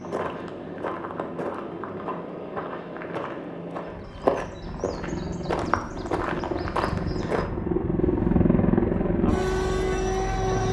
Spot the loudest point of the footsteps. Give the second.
4 s.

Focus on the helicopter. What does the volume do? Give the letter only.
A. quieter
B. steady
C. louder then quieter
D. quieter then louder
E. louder
E.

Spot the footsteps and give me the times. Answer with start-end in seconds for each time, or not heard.
0.0-7.5.